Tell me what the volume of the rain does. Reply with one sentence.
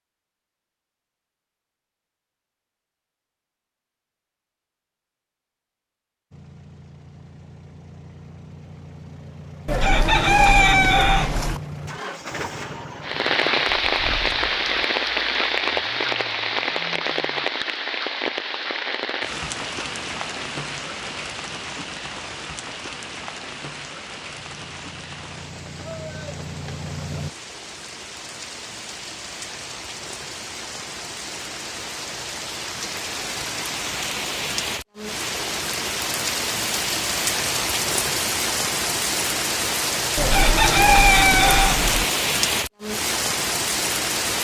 The loudness of the rain goes down, then up.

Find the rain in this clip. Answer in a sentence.
You can hear the rain from 13.0 to 44.3 s.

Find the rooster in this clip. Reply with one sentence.
You can hear the rooster from 9.7 to 11.6 s and from 40.1 to 42.1 s.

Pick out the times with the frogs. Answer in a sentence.
You can't hear the frogs here.